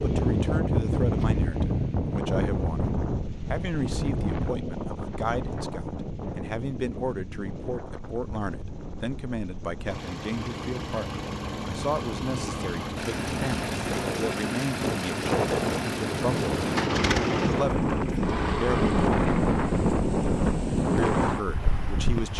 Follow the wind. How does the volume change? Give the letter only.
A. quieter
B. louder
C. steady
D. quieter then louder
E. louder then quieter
D.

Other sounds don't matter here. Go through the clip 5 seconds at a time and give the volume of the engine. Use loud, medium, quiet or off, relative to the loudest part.
quiet, quiet, loud, loud, off.